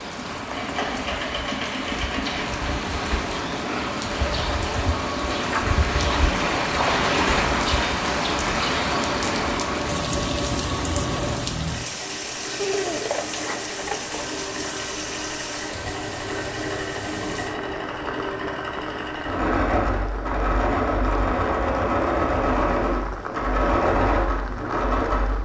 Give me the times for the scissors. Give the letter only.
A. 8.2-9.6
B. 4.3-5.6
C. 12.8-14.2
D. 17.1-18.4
C.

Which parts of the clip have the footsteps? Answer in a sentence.
The footsteps can't be heard in this clip.